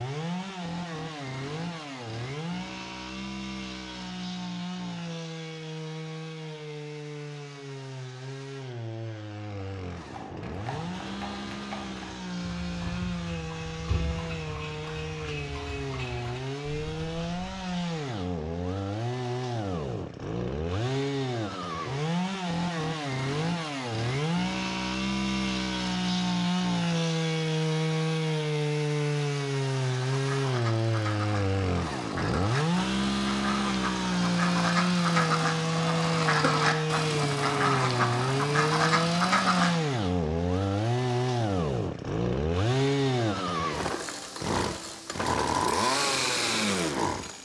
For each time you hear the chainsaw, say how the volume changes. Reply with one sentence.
You can hear the chainsaw from 0.0 to 47.4 s, getting louder.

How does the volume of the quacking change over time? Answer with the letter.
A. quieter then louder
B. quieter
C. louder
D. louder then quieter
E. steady
C.